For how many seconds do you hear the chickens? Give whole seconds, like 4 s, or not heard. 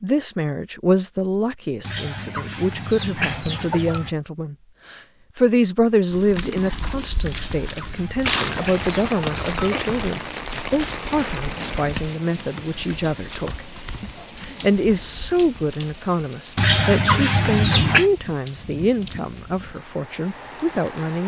7 s.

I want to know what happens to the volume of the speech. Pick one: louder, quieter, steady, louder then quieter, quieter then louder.
steady.